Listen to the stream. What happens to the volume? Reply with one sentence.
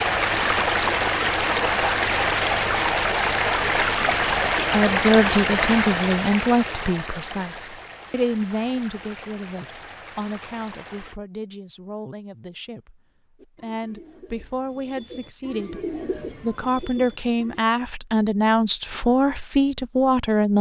The loudness of the stream goes down.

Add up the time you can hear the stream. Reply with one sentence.
The stream can be heard for 11 seconds in total.